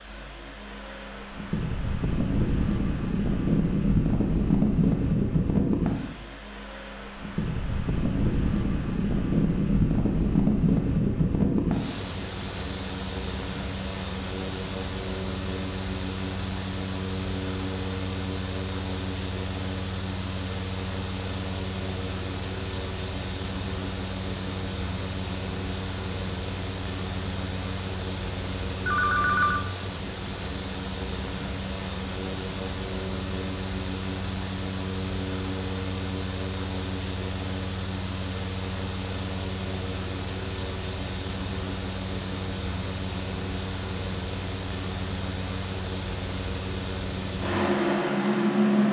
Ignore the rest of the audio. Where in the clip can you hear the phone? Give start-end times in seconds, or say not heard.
28.9-29.6.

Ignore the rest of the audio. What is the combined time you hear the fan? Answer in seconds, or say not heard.
49 s.